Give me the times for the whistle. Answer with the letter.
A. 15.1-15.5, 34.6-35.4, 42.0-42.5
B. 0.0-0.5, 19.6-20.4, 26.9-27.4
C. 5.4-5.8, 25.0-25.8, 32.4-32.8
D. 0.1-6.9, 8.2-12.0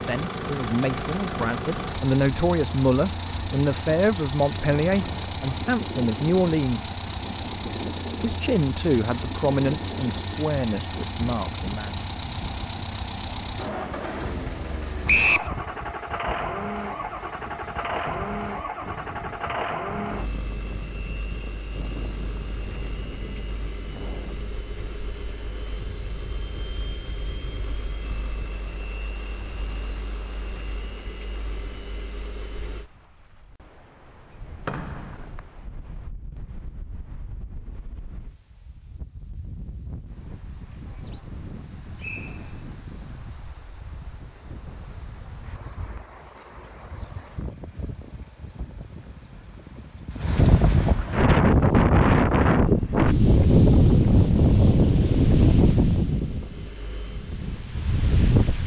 A.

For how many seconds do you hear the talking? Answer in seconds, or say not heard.
11 s.